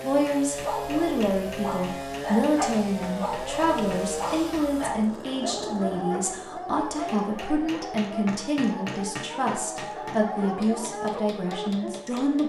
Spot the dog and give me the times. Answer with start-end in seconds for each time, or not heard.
0.5-11.9.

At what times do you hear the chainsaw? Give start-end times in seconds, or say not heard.
0.0-12.4.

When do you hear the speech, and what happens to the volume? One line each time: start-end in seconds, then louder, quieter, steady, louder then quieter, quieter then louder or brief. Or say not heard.
0.0-12.4 steady.